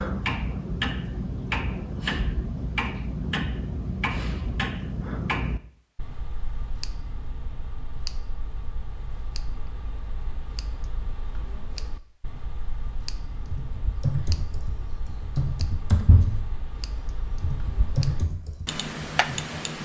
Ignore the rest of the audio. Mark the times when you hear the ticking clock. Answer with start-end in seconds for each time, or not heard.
0.0-19.7.